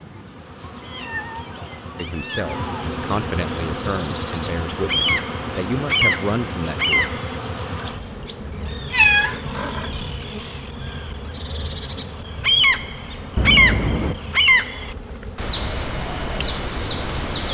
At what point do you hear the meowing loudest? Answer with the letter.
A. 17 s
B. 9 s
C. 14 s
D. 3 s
B.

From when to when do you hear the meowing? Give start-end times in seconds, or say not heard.
0.7-2.9, 8.9-9.9, 13.3-14.2.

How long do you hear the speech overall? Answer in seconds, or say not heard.
5 s.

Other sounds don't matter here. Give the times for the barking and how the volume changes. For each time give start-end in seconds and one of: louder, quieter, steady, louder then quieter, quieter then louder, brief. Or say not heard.
not heard.